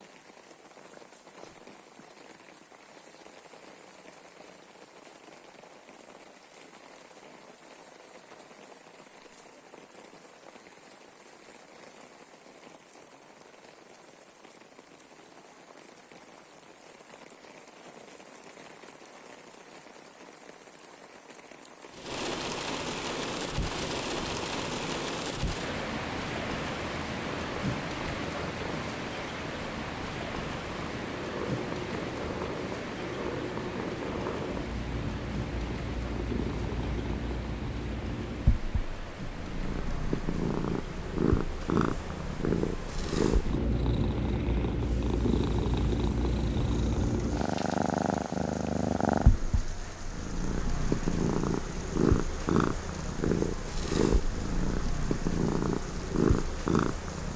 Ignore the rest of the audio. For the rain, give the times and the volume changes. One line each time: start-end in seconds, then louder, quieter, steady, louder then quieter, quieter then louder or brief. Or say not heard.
0.0-57.3 louder then quieter.